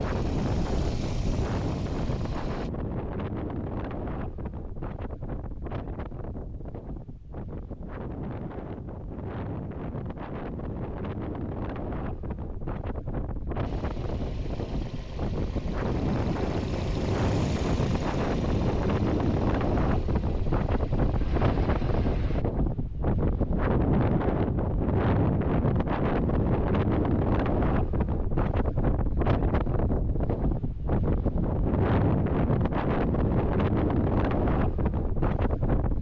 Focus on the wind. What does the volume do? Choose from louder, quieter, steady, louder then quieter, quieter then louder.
louder.